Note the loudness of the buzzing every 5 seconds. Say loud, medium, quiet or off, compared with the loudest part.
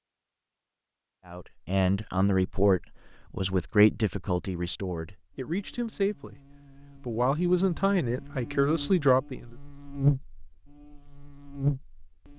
off, quiet, loud.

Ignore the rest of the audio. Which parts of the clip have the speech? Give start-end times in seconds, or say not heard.
1.2-9.6.